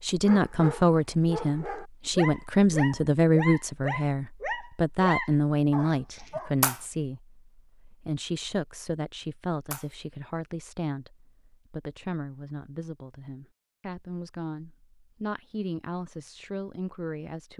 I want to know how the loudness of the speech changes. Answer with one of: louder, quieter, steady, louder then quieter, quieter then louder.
quieter.